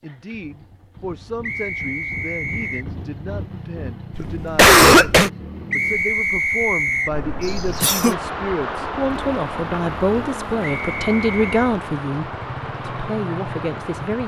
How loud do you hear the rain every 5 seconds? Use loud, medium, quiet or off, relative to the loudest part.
off, loud, loud.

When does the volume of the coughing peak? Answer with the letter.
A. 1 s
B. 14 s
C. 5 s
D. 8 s
C.